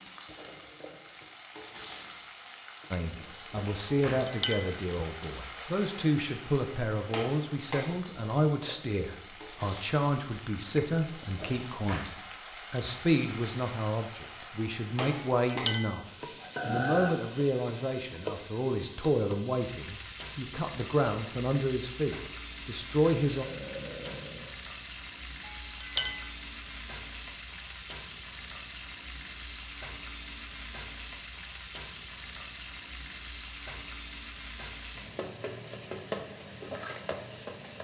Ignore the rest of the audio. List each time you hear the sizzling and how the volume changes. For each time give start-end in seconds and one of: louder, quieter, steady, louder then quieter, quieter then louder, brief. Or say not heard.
0.0-37.7 steady.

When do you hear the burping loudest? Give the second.
17 s.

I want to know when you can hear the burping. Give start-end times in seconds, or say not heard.
16.6-17.1, 23.3-24.6.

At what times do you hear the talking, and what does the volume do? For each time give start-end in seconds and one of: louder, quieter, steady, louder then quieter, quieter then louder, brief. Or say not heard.
2.9-23.4 steady.